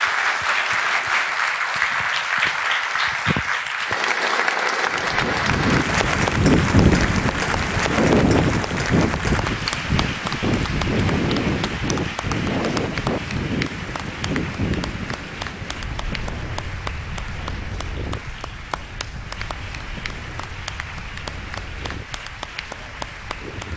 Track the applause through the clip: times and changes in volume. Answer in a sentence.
You can hear the applause from 0.0 to 23.7 s, getting quieter.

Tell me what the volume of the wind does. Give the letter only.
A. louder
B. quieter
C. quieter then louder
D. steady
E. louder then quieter
B.